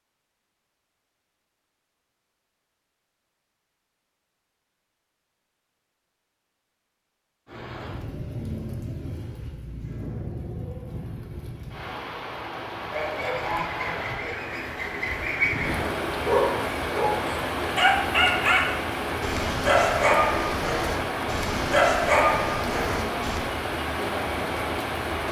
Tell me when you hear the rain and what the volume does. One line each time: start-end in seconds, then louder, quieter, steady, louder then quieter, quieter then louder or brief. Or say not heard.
7.5-25.2 louder.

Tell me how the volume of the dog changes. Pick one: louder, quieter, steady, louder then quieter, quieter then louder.
quieter then louder.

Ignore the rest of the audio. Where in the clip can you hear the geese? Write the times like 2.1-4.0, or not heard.
12.9-15.8.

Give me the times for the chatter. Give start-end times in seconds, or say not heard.
not heard.